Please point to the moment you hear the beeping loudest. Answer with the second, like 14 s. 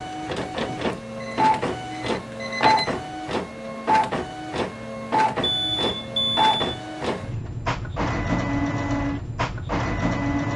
6 s.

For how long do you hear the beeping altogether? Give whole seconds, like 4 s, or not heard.
3 s.